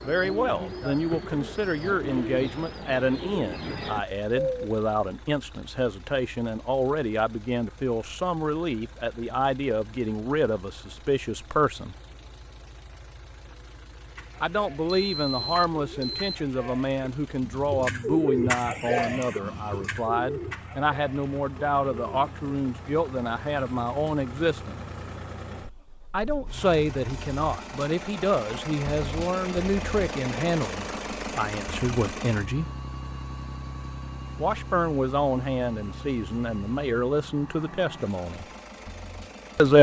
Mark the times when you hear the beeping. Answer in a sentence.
You can hear the beeping from 14.8 to 16.4 s.